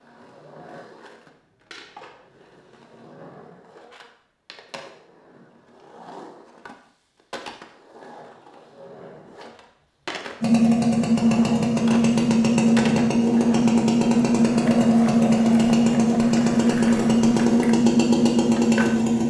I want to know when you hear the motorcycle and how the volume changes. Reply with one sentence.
The motorcycle can be heard from 10.4 to 19.2 s, at a steady volume.